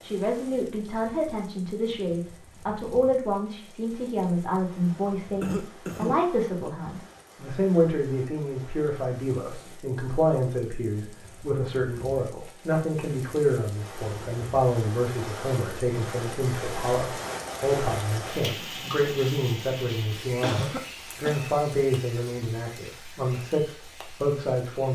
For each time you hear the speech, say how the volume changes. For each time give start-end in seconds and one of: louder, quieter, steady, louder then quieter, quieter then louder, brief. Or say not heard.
0.0-24.9 steady.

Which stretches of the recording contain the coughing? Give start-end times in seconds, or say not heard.
5.4-6.7, 20.4-21.4.